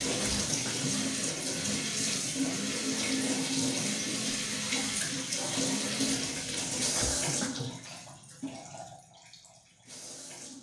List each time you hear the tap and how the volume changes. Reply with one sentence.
You can hear the tap from 0.0 to 10.5 s, getting quieter.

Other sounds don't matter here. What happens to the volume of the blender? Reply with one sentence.
The volume of the blender stays about the same.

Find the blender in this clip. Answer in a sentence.
The blender can be heard from 0.0 to 6.2 s.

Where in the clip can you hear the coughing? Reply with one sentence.
The coughing can be heard from 0.1 to 0.9 s and from 6.9 to 7.7 s.